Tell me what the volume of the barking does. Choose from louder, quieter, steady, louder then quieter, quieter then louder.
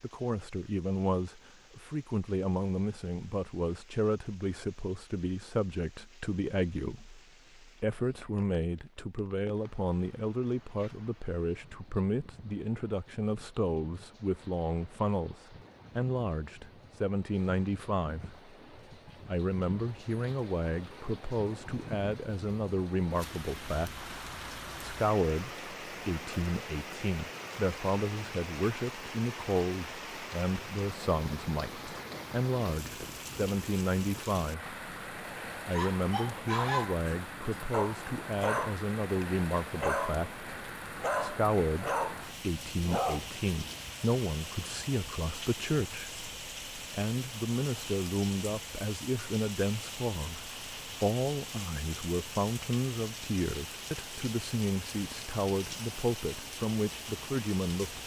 steady.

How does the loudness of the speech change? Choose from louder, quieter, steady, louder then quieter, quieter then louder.
steady.